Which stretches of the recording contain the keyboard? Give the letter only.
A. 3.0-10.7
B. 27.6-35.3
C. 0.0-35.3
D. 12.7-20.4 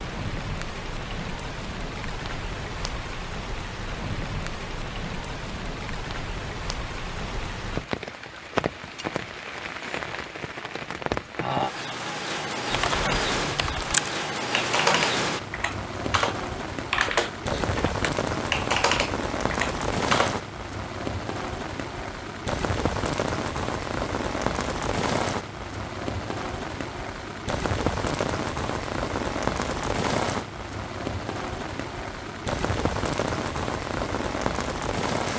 D.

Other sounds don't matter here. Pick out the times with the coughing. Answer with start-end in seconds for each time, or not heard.
not heard.